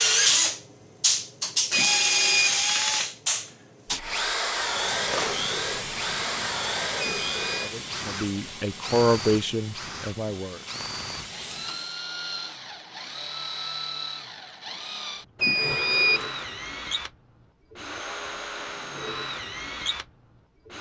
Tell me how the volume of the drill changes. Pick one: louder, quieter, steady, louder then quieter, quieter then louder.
quieter.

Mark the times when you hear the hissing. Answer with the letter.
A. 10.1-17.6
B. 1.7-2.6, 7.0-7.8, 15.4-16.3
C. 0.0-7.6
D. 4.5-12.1
D.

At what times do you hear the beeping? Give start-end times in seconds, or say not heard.
1.7-2.6, 7.0-7.8, 15.4-16.3.